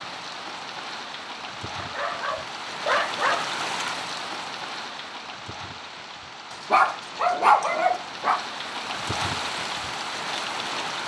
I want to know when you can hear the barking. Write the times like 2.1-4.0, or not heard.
1.8-3.5, 6.7-8.4.